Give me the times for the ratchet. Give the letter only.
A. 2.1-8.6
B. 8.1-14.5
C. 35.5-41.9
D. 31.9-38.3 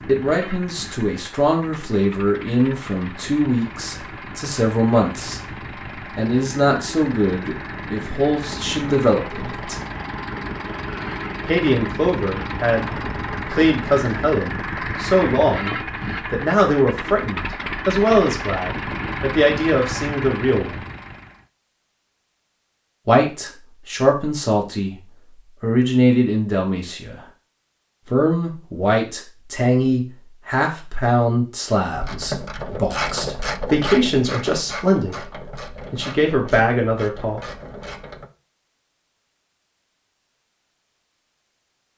D.